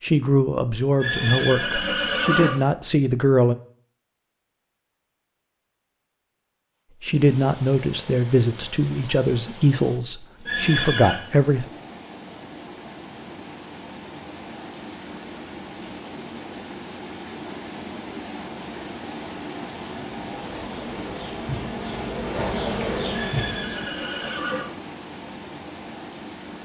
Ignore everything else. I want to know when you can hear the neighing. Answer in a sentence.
The neighing can be heard from 1.0 to 2.5 s, from 10.4 to 11.2 s and from 23.1 to 24.6 s.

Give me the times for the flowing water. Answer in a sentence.
The flowing water can be heard from 7.0 to 26.6 s.